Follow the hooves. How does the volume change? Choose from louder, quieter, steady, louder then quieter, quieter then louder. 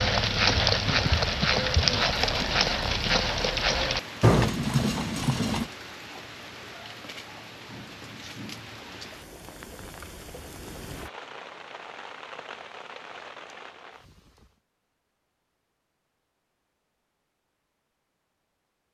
steady.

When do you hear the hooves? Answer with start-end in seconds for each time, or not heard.
0.0-5.7.